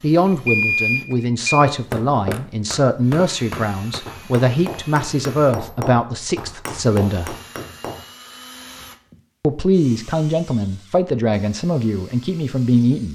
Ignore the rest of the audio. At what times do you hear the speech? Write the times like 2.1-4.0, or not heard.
0.0-7.3, 9.4-13.0.